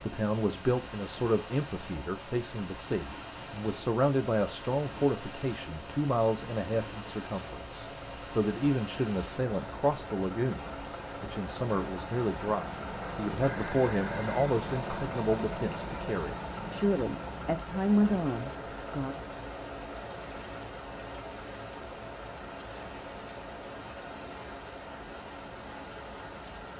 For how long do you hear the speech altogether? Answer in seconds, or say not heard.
19 s.